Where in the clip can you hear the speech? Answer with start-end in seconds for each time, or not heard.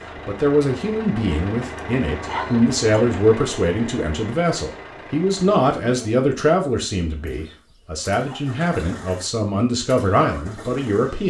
0.2-11.2.